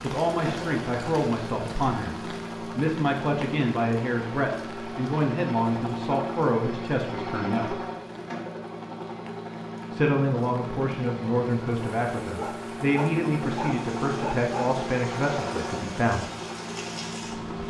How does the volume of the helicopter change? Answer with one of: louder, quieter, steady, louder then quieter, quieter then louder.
steady.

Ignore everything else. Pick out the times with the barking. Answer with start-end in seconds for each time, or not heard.
12.2-14.8.